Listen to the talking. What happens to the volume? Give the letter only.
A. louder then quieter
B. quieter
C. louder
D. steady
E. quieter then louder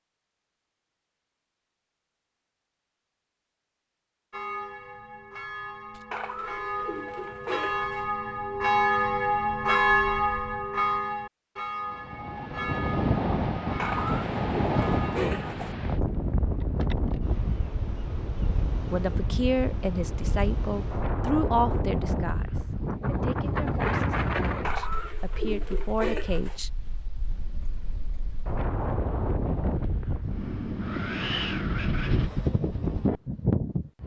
E.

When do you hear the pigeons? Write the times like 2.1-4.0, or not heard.
6.1-8.1, 13.8-15.8, 24.6-26.6.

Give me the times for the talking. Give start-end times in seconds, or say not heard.
18.9-26.7.